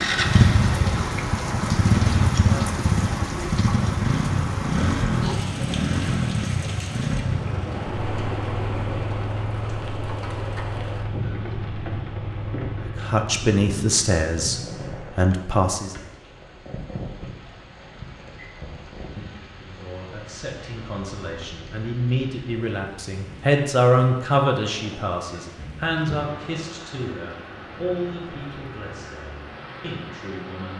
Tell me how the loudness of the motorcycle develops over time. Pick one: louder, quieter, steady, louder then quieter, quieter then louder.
quieter.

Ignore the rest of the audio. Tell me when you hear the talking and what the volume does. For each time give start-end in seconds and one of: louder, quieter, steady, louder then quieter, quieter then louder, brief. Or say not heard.
13.0-15.9 brief
19.6-30.7 louder then quieter.